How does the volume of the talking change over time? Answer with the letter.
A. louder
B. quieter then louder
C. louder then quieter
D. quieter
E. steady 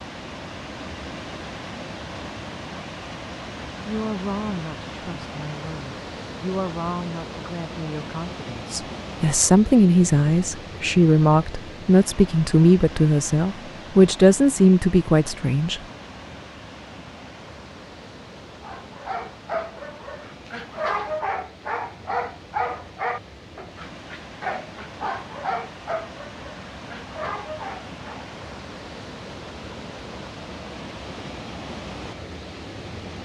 A.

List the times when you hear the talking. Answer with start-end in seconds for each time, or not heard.
3.9-15.8.